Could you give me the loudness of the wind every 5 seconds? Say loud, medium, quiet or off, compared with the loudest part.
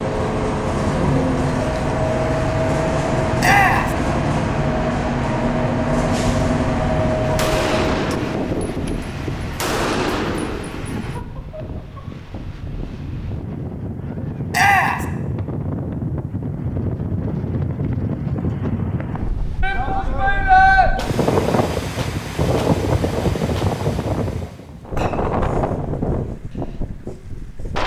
off, medium, medium, loud, loud, loud.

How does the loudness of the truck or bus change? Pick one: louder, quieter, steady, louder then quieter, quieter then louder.
quieter.